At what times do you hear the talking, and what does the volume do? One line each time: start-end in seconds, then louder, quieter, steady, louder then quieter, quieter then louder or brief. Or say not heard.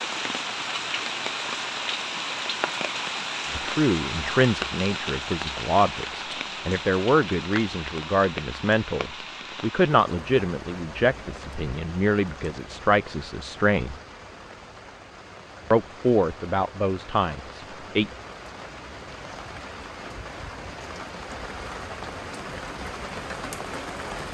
3.5-13.9 steady
15.7-18.1 brief.